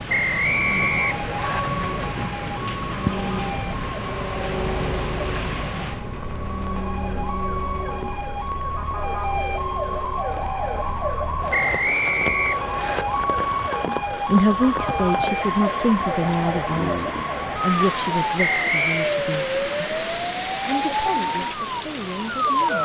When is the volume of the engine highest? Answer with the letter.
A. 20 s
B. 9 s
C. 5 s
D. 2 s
C.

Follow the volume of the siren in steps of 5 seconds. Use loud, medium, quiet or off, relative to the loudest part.
medium, medium, loud, loud, loud.